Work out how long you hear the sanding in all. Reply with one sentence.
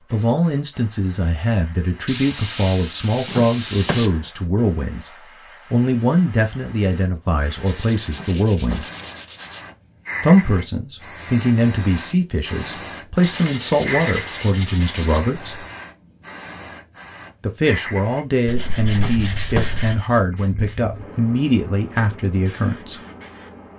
You can hear the sanding for 8 seconds altogether.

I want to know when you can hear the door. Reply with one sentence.
You can hear the door from 3.2 to 4.3 s, from 8.1 to 9.0 s and from 18.9 to 19.9 s.